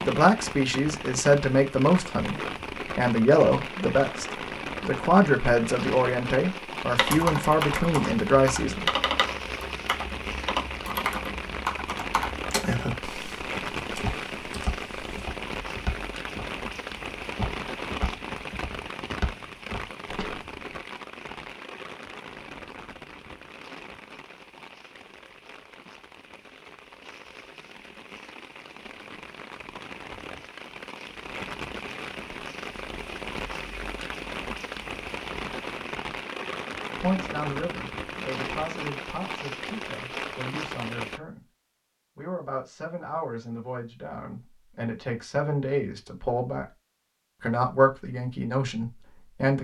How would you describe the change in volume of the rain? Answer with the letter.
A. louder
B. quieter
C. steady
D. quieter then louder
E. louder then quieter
D.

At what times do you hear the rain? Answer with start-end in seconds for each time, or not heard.
0.0-41.2.